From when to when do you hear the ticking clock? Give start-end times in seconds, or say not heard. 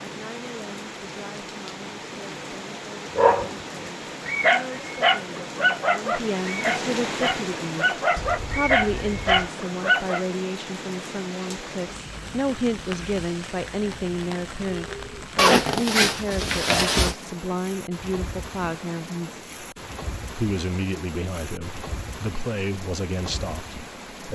not heard.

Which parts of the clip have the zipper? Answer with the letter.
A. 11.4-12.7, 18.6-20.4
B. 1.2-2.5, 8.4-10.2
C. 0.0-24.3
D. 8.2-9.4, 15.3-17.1
D.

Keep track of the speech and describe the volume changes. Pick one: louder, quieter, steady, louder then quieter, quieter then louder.
louder.